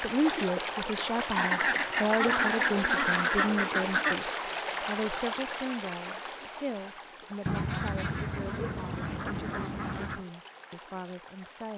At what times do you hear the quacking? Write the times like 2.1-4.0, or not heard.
1.4-4.2, 7.5-10.2.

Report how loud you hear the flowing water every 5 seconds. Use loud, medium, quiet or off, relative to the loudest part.
loud, medium, quiet.